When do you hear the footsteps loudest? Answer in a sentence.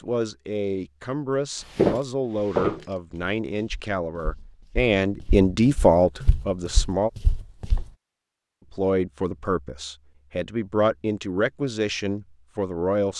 The loudest moment of the footsteps is at 2 seconds.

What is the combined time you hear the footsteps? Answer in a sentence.
The footsteps can be heard for 6 seconds in total.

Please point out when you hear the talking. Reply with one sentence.
You can hear the talking from 0.0 to 7.1 s and from 8.7 to 13.1 s.